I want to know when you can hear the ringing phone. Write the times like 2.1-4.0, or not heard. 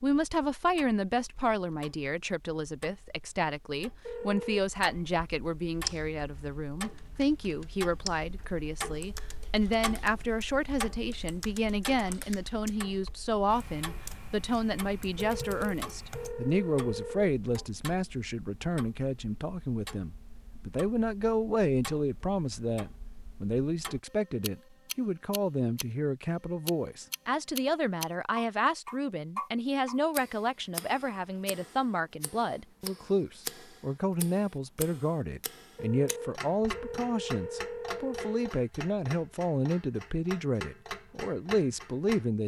4.0-4.6, 15.2-17.4, 35.8-38.5.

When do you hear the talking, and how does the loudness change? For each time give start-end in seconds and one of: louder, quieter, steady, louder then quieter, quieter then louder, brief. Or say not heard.
0.0-42.4 steady.